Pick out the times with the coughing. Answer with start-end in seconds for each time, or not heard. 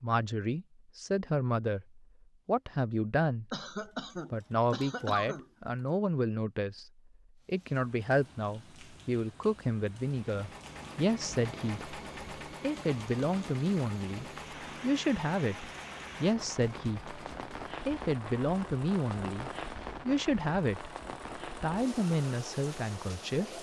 3.5-5.5.